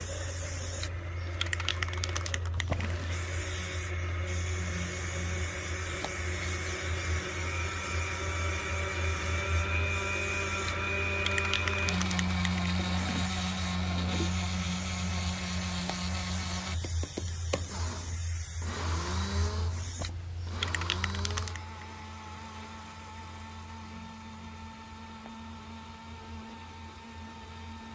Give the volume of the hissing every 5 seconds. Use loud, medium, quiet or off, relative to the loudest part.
loud, loud, loud, loud, loud, quiet.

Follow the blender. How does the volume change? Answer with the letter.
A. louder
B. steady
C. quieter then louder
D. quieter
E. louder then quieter
E.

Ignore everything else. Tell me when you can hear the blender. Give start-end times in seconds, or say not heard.
0.0-27.9.